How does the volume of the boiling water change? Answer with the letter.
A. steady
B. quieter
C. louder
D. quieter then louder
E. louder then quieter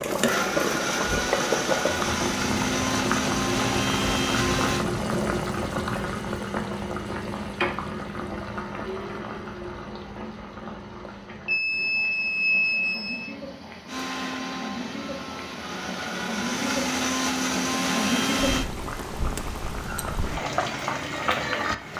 D.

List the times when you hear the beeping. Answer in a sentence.
You can hear the beeping from 11.1 to 13.3 s.